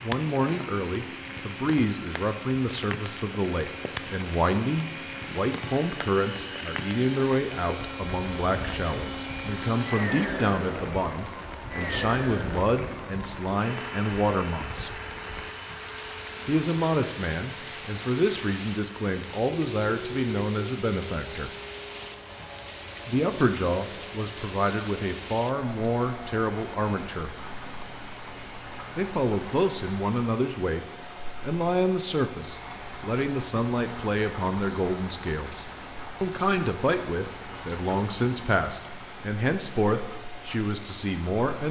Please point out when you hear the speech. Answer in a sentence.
You can hear the speech from 0.0 to 14.9 s, from 16.4 to 21.6 s, from 23.1 to 27.3 s, from 28.9 to 30.8 s and from 31.4 to 41.6 s.